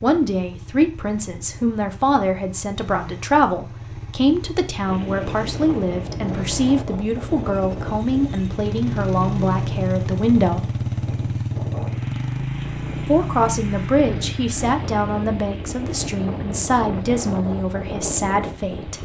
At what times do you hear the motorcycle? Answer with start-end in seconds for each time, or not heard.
0.0-19.0.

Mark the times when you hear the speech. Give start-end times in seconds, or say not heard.
0.0-10.6, 13.1-19.0.